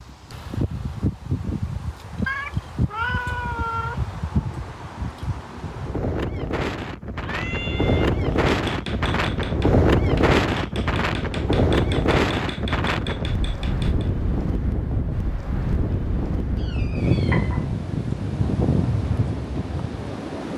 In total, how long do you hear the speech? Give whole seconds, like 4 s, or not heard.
not heard.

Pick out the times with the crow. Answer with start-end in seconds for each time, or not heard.
not heard.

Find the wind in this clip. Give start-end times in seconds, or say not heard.
0.0-20.5.